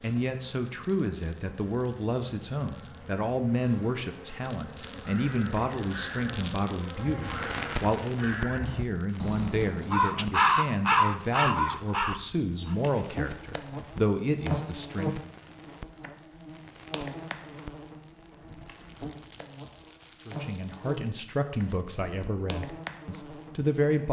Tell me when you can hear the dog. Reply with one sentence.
You can't hear the dog here.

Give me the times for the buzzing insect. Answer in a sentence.
The buzzing insect can be heard from 0.0 to 7.9 s and from 12.6 to 24.0 s.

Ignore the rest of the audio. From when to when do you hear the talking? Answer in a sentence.
You can hear the talking from 0.0 to 15.3 s and from 20.2 to 24.0 s.